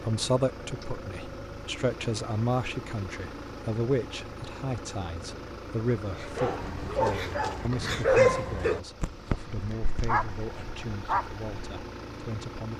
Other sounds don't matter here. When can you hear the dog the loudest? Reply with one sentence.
The volume of the dog peaks at 8 seconds.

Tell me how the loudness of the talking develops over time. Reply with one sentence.
The volume of the talking goes down.